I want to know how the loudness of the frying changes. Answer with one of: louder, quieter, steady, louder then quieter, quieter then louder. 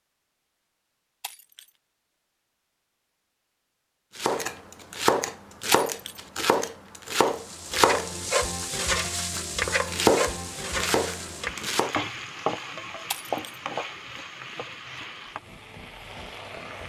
quieter.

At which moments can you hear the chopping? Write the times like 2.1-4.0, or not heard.
4.2-11.9.